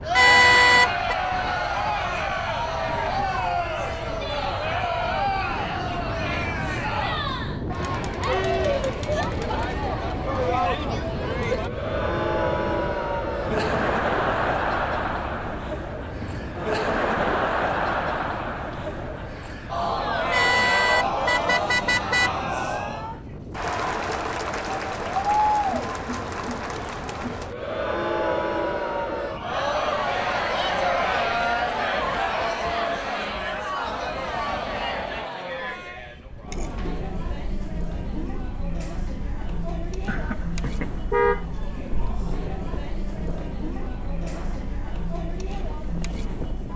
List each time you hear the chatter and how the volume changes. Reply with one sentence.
You can hear the chatter from 0.0 to 46.7 s, getting quieter.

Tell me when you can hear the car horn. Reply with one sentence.
The car horn can be heard from 0.1 to 1.1 s, from 20.3 to 22.3 s and from 40.0 to 41.5 s.